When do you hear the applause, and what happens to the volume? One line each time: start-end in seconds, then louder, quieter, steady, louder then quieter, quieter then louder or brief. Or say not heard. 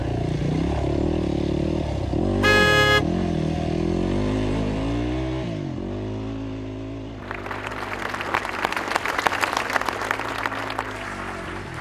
7.2-11.7 louder then quieter.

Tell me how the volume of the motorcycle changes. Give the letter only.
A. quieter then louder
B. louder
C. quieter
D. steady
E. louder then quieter
C.